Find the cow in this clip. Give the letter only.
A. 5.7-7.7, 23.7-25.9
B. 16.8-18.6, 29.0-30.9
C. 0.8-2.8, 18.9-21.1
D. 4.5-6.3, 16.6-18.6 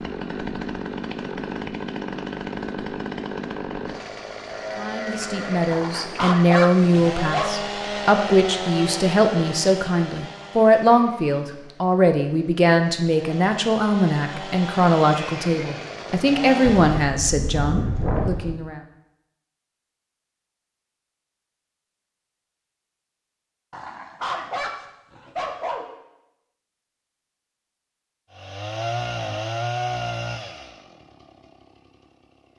D.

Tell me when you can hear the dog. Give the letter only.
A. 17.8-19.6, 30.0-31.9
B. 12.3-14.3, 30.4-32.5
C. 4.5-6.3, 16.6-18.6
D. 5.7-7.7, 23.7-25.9
D.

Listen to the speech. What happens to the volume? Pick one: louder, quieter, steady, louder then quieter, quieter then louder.
steady.